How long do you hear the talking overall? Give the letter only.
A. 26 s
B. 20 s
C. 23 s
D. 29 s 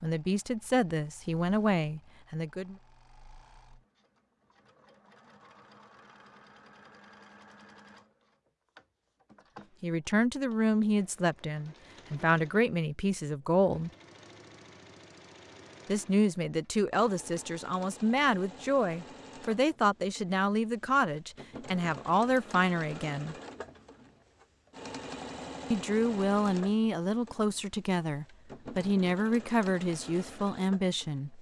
B.